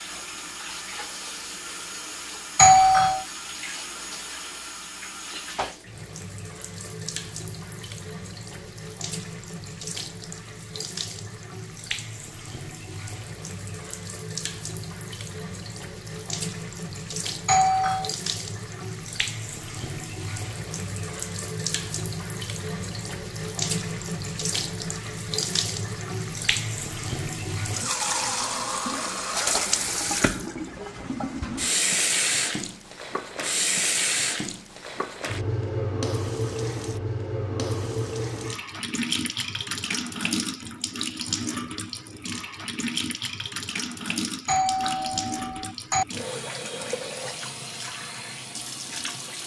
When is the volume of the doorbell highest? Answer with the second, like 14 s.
3 s.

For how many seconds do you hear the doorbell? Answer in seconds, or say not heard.
3 s.